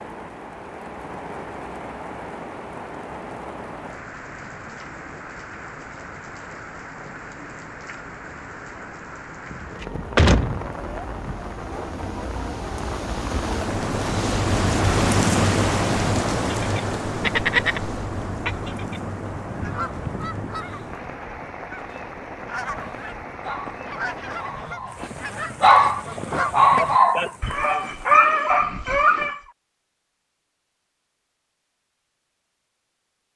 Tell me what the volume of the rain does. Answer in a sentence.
The volume of the rain goes up, then down.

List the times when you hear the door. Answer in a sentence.
You can hear the door from 9.5 to 11.3 s.